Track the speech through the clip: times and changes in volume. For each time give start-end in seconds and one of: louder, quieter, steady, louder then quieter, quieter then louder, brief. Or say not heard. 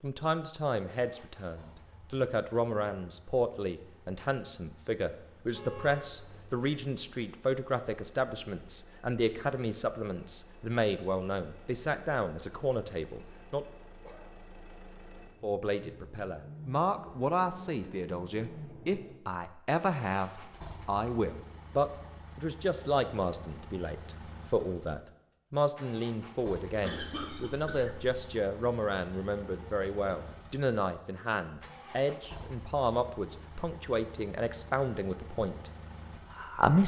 0.0-13.7 steady
15.4-35.7 steady
36.3-36.8 brief.